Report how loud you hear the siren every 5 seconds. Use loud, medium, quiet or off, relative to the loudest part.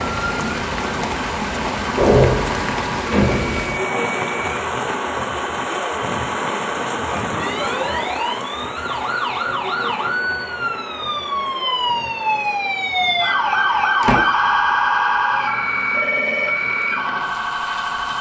medium, medium, loud, loud.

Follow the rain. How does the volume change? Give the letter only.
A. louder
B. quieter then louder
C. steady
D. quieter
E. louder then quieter
D.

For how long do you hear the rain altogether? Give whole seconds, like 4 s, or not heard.
18 s.